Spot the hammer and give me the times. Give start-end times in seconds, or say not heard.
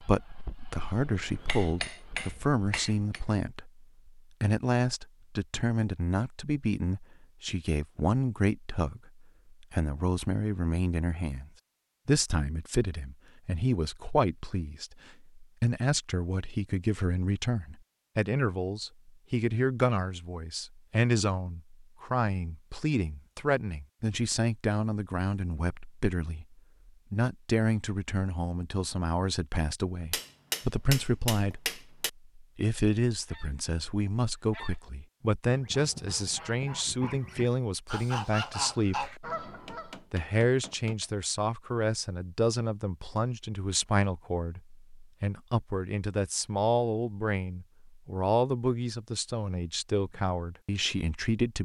1.0-3.2, 30.1-32.1, 39.5-41.1.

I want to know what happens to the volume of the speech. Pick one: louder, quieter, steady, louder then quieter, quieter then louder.
steady.